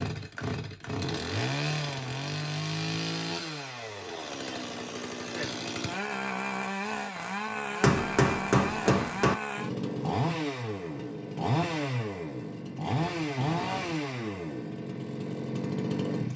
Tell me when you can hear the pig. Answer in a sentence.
You can't hear the pig here.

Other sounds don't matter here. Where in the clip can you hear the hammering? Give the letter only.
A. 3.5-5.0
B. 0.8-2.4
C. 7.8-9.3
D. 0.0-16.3
C.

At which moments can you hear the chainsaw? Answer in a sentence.
The chainsaw can be heard from 0.0 to 16.3 s.